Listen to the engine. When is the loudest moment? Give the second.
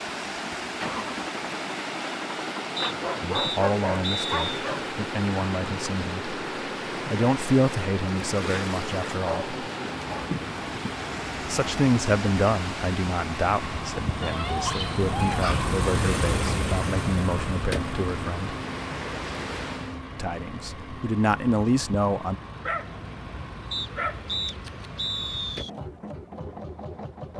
16 s.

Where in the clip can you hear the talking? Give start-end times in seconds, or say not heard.
3.2-6.2, 7.0-9.5, 11.4-18.6, 20.1-22.4.